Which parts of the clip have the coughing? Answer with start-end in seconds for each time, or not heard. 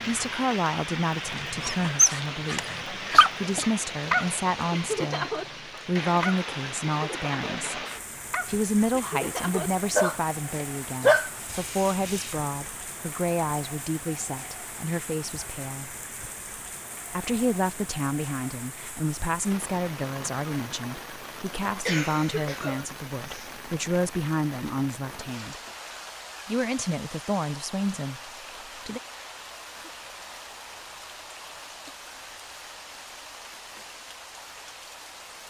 3.1-3.7, 21.9-23.5.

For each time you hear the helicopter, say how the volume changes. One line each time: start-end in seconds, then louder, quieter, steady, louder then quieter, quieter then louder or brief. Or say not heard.
not heard.